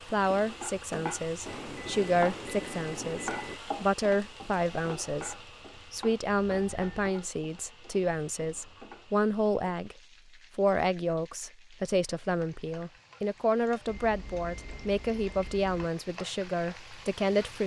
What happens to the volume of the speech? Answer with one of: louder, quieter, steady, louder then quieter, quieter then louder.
steady.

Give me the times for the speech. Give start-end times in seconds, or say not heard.
0.1-9.9, 10.6-17.6.